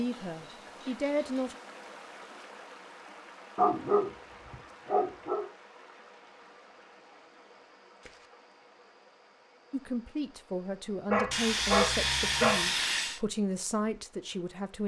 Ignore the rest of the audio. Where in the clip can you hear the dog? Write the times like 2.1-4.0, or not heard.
3.5-5.5, 11.1-12.7.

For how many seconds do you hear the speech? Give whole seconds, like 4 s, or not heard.
7 s.